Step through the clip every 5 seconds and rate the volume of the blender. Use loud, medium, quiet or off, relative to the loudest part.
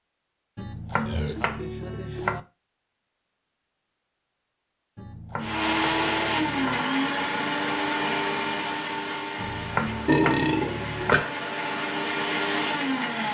off, loud, loud.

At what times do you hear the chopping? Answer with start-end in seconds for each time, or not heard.
0.6-2.4, 5.0-6.8, 9.3-11.2.